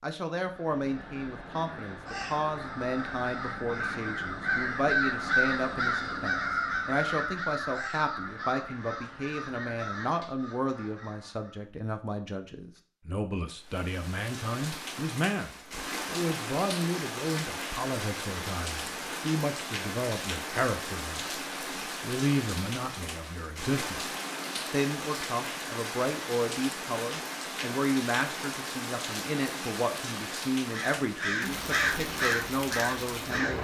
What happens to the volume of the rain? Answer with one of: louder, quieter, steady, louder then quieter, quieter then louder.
steady.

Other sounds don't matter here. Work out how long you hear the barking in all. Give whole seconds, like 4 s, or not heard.
not heard.